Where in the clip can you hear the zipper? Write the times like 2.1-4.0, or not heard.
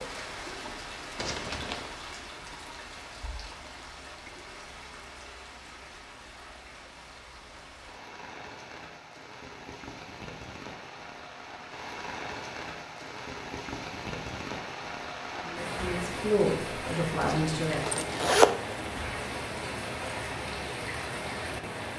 1.1-1.9, 17.2-18.9.